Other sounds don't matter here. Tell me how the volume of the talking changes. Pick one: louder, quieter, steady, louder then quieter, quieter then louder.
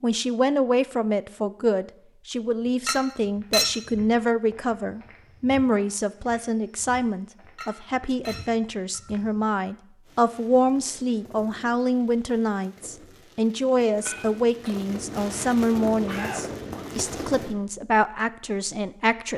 steady.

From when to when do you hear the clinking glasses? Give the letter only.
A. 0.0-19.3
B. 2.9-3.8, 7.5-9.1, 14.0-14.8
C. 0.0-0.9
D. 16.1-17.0
B.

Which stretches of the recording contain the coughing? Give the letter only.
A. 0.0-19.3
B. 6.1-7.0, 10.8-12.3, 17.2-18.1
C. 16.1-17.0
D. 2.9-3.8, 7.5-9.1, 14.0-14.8
C.